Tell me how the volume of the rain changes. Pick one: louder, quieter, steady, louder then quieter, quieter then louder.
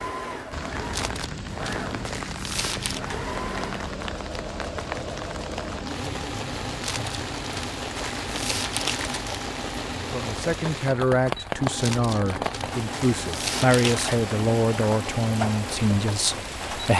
steady.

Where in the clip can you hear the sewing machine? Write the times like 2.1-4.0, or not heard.
0.0-16.6.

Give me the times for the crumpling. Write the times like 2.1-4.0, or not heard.
0.9-3.0, 6.8-9.4, 11.8-14.2.